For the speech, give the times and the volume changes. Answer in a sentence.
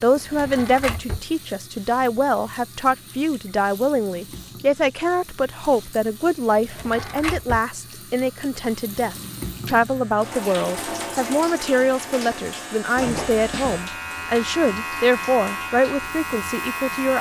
You can hear the speech from 0.0 to 17.1 s, at a steady volume.